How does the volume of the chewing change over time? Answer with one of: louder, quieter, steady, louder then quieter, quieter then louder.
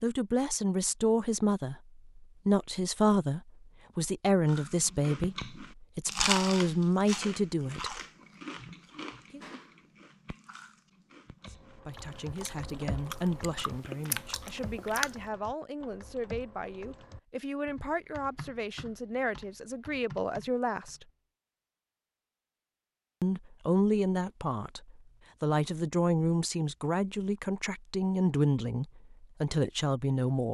quieter then louder.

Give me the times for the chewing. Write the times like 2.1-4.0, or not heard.
4.5-15.1.